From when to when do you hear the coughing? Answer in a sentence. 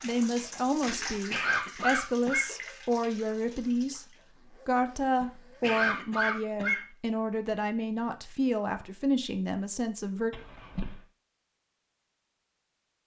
You can hear the coughing from 0.8 to 2.5 s, from 5.2 to 6.8 s and from 10.3 to 11.0 s.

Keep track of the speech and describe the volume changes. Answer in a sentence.
The volume of the speech stays about the same.